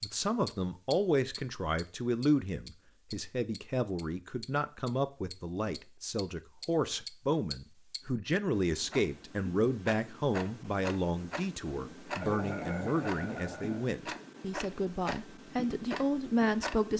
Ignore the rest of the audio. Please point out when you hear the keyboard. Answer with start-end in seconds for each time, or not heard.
not heard.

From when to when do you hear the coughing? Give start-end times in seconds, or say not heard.
12.2-13.9.